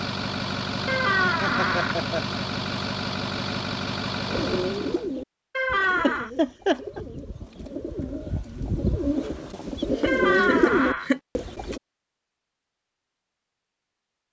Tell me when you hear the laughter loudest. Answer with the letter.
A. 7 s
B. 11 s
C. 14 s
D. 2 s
A.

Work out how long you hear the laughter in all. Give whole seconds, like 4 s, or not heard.
4 s.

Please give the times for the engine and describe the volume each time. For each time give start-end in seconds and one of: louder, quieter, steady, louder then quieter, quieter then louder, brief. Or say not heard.
0.0-5.1 steady.